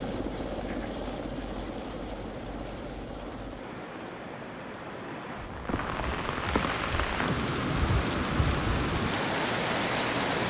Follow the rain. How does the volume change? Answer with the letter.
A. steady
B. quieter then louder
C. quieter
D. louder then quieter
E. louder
E.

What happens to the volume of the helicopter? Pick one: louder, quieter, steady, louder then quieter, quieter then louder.
quieter then louder.